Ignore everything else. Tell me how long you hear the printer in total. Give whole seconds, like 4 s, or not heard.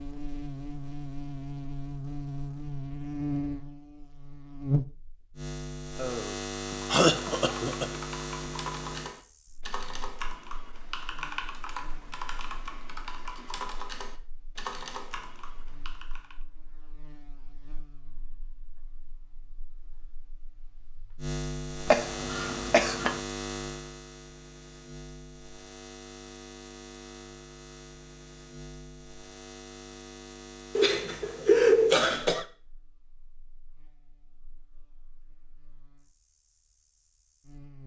not heard.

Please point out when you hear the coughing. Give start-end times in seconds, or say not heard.
6.0-7.8, 21.9-23.2, 30.8-32.5.